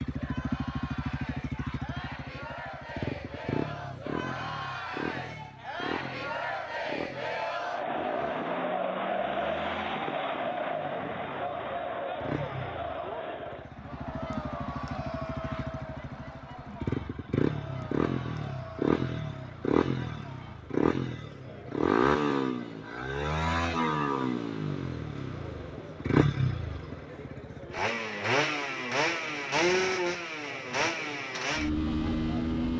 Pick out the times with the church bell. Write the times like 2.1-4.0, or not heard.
not heard.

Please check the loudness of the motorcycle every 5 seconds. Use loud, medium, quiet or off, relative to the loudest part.
medium, quiet, quiet, loud, loud, loud, loud.